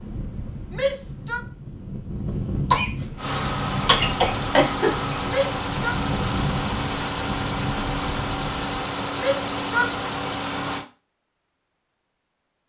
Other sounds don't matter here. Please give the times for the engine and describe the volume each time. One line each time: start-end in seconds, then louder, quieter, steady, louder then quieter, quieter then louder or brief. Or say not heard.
3.1-10.8 steady.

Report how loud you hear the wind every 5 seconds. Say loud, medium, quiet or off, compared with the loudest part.
loud, loud, off.